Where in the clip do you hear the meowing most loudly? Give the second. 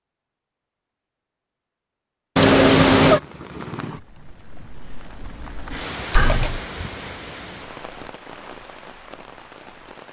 3 s.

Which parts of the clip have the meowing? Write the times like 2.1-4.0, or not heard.
2.4-3.2, 6.2-6.6.